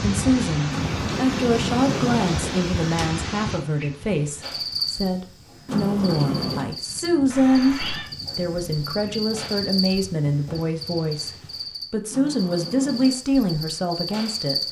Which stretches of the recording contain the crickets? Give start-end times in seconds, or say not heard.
4.4-14.6.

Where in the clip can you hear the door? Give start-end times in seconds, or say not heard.
0.7-3.2, 5.7-6.7, 12.1-13.2.